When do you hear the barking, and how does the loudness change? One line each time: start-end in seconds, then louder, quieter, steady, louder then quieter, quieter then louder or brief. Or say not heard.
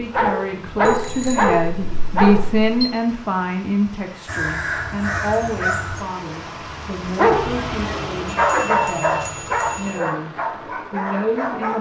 0.0-2.5 brief
7.0-11.7 louder then quieter.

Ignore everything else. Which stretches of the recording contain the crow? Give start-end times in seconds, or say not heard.
4.2-6.0.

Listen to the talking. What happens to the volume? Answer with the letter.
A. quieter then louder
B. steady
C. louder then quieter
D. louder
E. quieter
E.